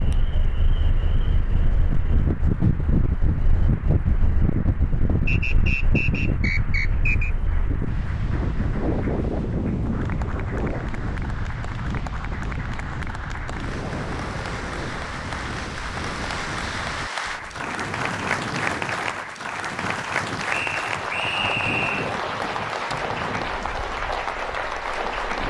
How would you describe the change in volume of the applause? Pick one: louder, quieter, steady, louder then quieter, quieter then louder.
louder.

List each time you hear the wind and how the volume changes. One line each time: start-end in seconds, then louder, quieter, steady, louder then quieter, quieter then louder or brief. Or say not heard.
0.0-25.4 quieter.